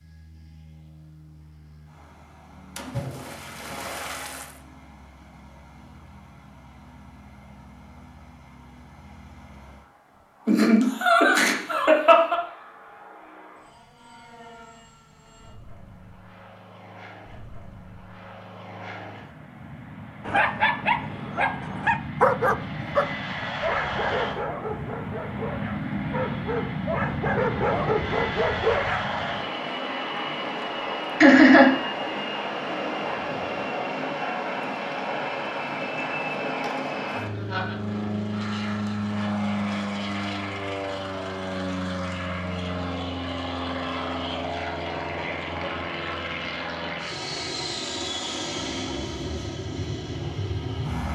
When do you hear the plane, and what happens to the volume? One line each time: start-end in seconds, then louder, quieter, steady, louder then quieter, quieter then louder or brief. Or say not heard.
0.0-51.1 louder.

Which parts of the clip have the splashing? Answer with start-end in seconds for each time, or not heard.
2.8-4.6.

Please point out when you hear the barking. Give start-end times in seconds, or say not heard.
20.2-29.1.